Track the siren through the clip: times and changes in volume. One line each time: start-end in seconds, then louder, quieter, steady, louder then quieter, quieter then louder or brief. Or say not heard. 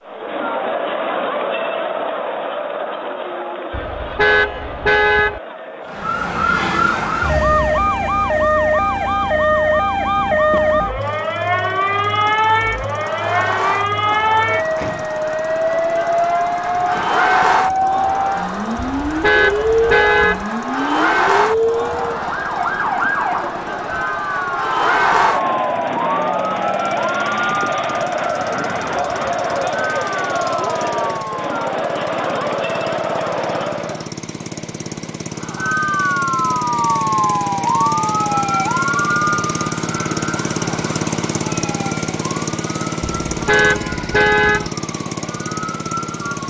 5.8-31.4 quieter
35.4-46.4 quieter.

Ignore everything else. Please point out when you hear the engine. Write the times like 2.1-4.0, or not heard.
10.9-46.4.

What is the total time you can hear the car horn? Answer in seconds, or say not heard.
5 s.